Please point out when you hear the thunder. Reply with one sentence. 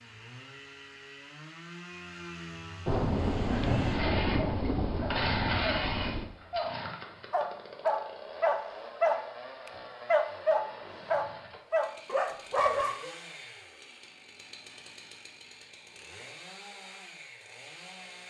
The thunder can be heard from 2.9 to 6.3 s.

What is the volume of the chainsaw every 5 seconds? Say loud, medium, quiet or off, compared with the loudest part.
loud, loud, medium, medium.